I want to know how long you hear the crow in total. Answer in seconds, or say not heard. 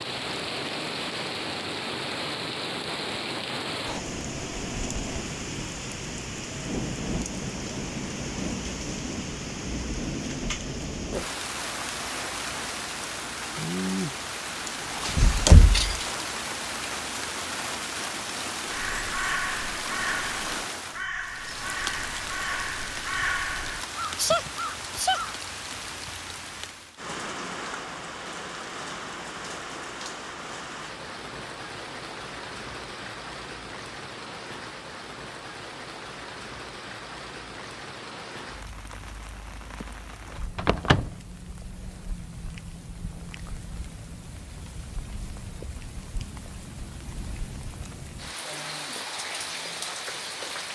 7 s.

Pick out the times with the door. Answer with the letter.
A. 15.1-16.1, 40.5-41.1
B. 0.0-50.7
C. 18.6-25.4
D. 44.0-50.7
A.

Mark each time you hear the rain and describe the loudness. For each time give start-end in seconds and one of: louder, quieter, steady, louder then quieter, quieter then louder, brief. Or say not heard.
0.0-50.7 quieter.